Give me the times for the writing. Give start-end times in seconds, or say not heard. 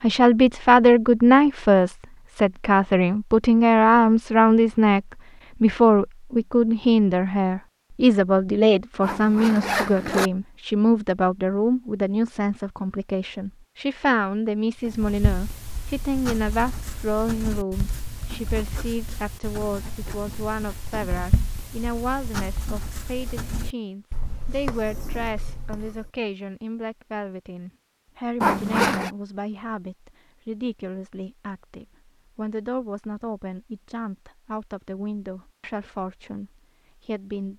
14.8-26.1.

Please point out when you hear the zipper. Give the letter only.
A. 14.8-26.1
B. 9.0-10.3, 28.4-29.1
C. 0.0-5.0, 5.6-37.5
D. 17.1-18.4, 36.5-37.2
B.